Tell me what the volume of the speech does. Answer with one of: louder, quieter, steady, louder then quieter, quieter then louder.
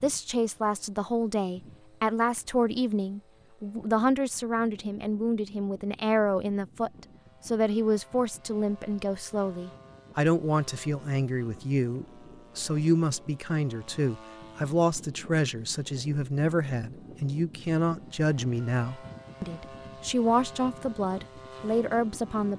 steady.